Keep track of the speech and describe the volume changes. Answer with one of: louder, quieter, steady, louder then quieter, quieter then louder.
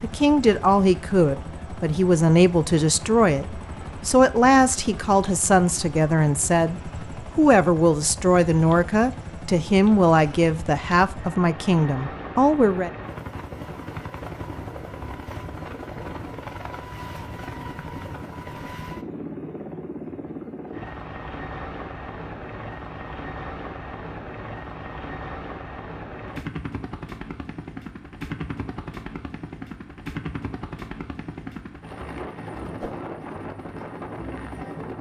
steady.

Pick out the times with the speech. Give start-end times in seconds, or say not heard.
0.0-12.9.